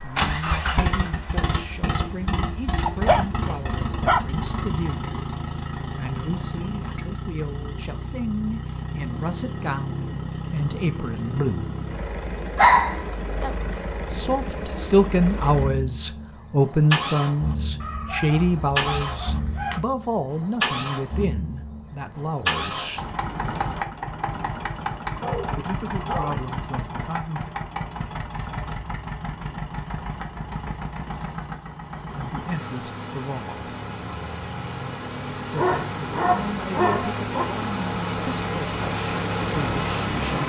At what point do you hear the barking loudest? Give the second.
13 s.